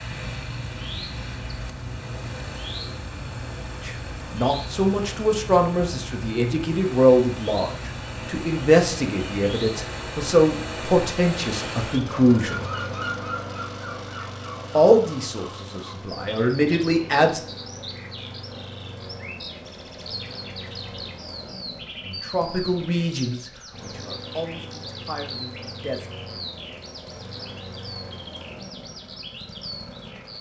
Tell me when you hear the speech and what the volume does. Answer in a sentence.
You can hear the speech from 3.9 to 12.7 s, at a steady volume; briefly from 14.8 to 17.4 s; and from 22.1 to 26.1 s, getting quieter then louder.